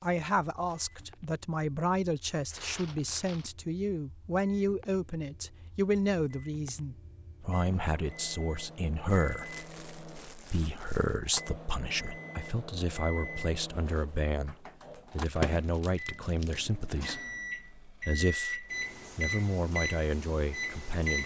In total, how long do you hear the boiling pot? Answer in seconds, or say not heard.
not heard.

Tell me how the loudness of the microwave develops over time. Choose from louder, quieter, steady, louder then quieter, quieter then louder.
louder.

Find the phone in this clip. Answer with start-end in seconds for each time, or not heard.
not heard.